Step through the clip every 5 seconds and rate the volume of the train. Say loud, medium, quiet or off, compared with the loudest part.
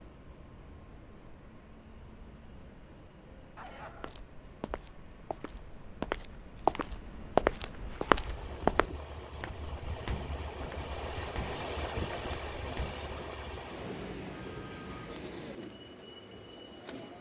quiet, medium, loud, medium.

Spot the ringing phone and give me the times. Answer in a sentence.
You can hear the ringing phone from 3.5 to 6.0 s and from 14.2 to 15.2 s.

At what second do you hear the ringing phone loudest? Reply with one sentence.
The loudest moment of the ringing phone is at 4 seconds.